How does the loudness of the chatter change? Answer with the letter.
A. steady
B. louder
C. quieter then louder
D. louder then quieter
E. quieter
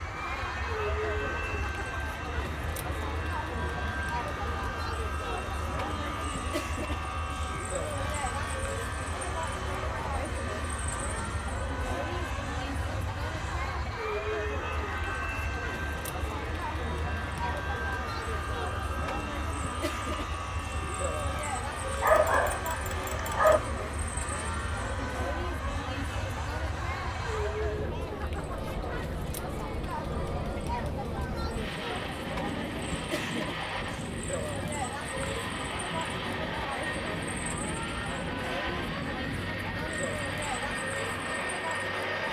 A.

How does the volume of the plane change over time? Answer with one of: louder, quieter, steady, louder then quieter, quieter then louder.
steady.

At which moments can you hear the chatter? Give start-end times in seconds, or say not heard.
0.0-42.2.